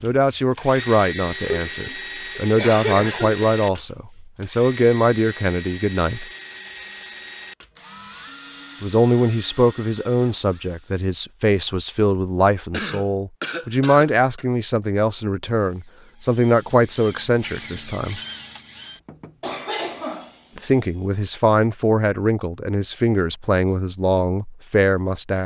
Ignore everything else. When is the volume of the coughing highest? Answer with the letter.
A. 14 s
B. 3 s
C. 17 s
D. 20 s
B.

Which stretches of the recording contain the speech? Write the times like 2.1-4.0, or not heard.
0.0-6.2, 8.8-18.2, 20.6-25.4.